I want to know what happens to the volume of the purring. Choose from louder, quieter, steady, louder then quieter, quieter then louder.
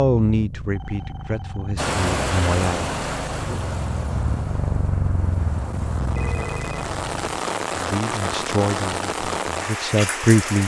louder.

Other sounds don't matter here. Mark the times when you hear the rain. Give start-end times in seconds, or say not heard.
1.8-10.6.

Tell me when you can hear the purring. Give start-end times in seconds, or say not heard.
0.1-7.3.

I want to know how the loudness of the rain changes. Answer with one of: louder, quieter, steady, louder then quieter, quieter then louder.
quieter then louder.